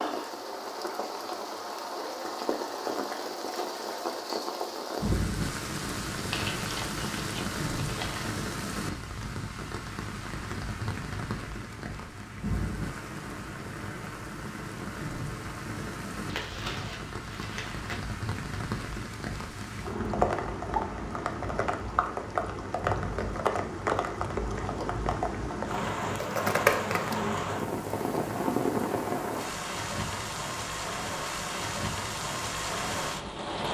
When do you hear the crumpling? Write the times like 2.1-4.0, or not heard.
6.3-8.3, 16.2-18.0, 26.2-27.1.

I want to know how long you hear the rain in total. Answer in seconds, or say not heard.
34 s.